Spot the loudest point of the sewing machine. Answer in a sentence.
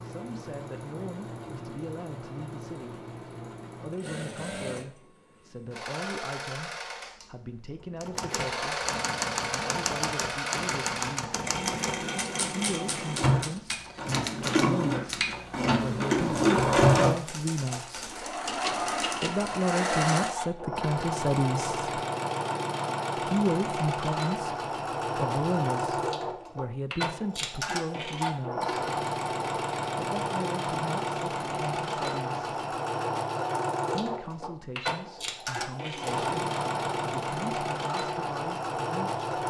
The loudest moment of the sewing machine is at 17 seconds.